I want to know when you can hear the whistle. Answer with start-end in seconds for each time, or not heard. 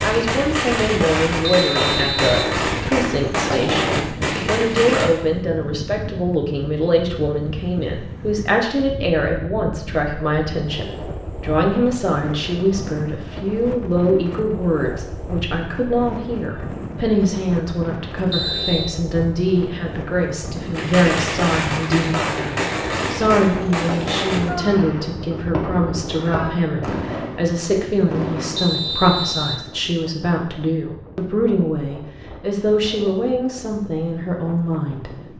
1.4-2.5, 18.3-18.9, 28.6-29.6.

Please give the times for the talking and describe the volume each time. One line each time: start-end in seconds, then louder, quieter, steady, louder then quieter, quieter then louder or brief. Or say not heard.
0.0-35.1 steady.